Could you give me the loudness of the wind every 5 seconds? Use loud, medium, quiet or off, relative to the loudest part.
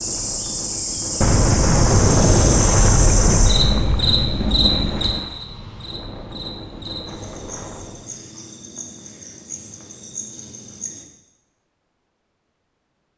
loud, medium, off.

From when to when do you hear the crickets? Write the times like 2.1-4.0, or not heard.
0.0-11.1.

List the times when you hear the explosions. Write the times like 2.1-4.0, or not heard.
1.2-5.2.